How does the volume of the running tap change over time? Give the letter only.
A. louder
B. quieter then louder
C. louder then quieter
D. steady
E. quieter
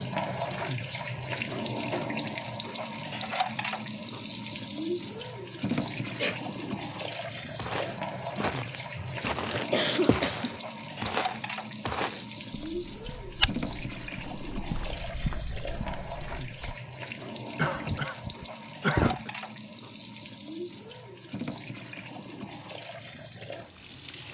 E.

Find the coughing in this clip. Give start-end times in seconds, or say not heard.
5.7-6.4, 8.9-10.6, 17.6-19.3.